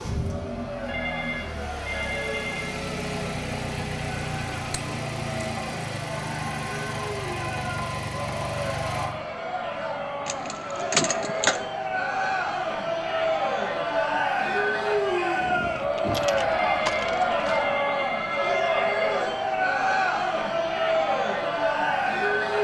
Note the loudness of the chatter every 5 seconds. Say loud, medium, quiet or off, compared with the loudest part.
quiet, medium, loud, loud, loud.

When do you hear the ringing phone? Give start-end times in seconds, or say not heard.
0.8-2.8, 16.5-19.1.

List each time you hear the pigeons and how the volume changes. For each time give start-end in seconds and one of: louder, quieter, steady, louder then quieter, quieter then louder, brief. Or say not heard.
not heard.